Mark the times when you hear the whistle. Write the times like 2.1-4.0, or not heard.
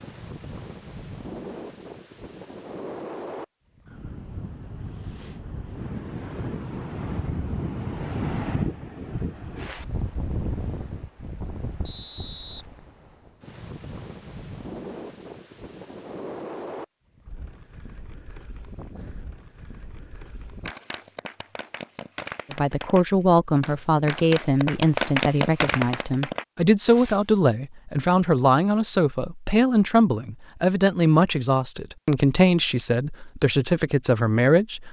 11.8-12.7.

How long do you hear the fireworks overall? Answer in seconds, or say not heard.
7 s.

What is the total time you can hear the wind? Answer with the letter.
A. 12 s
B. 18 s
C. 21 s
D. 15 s
C.